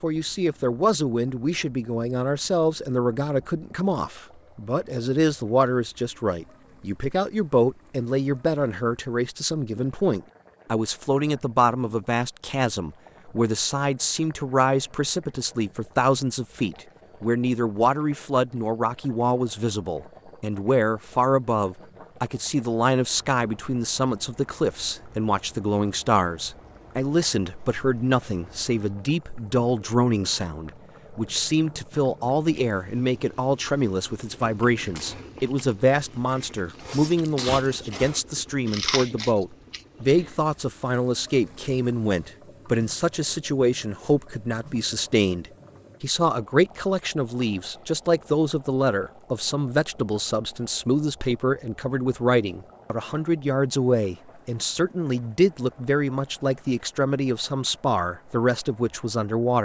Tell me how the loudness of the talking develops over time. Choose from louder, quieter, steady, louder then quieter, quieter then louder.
steady.